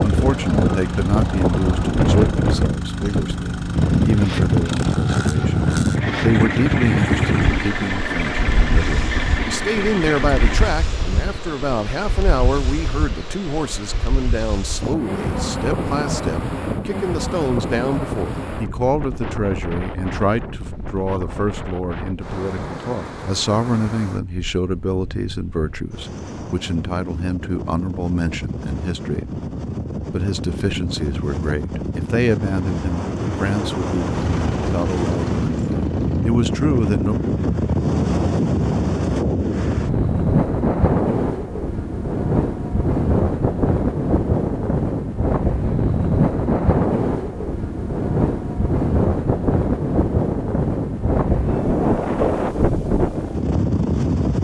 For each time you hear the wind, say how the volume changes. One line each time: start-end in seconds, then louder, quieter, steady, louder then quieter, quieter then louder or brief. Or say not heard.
0.0-54.4 quieter then louder.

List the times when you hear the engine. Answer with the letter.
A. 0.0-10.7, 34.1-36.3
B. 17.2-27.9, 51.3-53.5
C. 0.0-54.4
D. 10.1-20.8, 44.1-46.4
A.